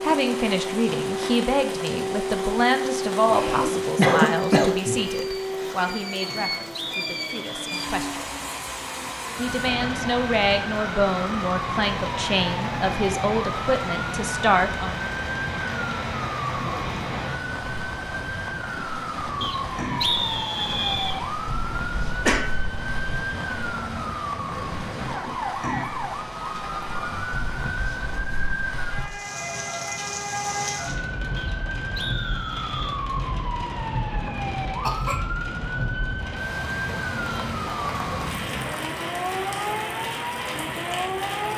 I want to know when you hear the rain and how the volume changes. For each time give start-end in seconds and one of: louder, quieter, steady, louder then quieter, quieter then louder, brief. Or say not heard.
0.0-41.5 steady.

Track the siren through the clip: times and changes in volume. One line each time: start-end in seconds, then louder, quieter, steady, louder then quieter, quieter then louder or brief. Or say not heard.
0.0-41.5 steady.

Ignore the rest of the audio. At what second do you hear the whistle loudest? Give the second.
20 s.